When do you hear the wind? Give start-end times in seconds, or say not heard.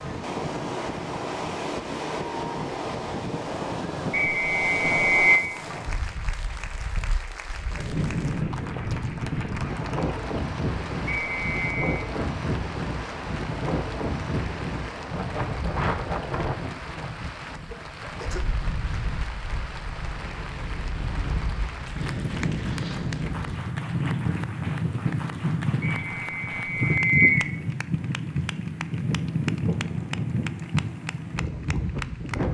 0.0-32.4.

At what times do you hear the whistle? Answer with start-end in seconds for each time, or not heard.
4.1-5.5, 11.1-11.9, 25.8-27.5.